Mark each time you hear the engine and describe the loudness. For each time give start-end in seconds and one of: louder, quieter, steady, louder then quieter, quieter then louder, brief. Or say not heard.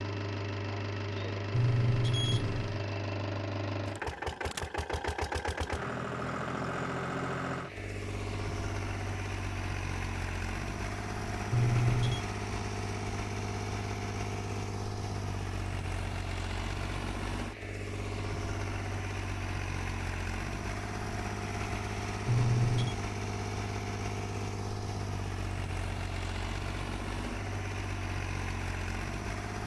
0.0-29.6 steady.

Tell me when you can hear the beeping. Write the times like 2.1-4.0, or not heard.
1.5-2.9, 11.5-12.2, 22.2-22.9.